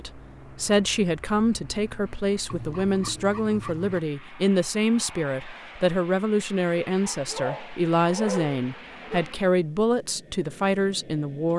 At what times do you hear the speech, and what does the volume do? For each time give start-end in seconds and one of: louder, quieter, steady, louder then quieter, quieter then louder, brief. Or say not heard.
0.0-11.5 steady.